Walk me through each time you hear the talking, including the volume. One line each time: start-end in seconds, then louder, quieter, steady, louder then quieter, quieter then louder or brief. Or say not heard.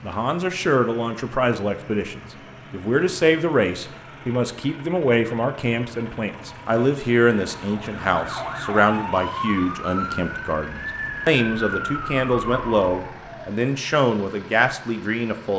0.0-15.5 steady.